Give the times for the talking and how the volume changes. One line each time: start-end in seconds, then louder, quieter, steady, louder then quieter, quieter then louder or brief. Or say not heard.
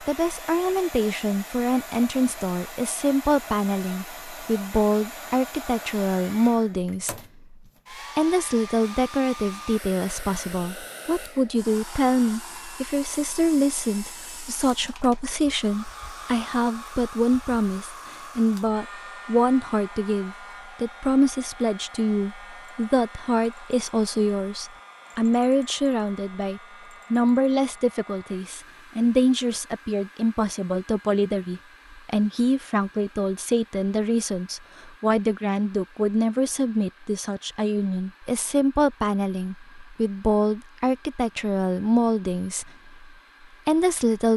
0.0-7.5 steady
8.2-44.3 steady.